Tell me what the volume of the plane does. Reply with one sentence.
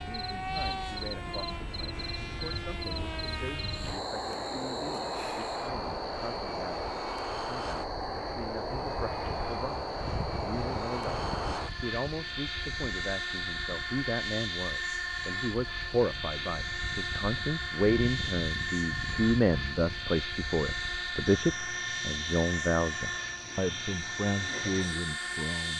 The volume of the plane stays about the same.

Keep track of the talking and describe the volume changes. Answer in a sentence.
The loudness of the talking goes up.